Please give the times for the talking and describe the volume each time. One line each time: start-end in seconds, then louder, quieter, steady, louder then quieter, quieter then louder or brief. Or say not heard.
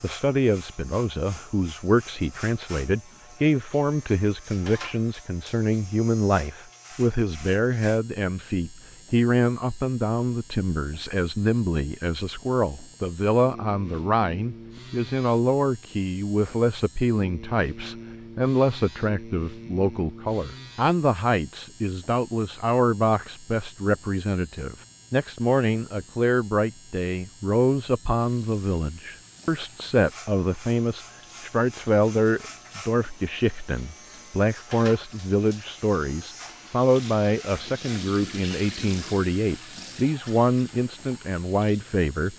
0.0-42.3 steady.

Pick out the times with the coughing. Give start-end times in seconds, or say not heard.
not heard.